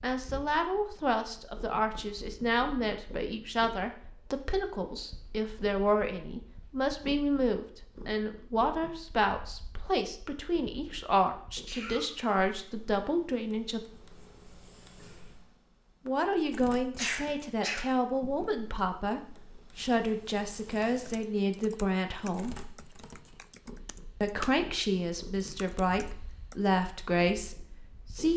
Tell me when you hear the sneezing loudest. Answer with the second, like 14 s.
17 s.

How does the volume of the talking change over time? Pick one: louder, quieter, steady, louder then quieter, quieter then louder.
steady.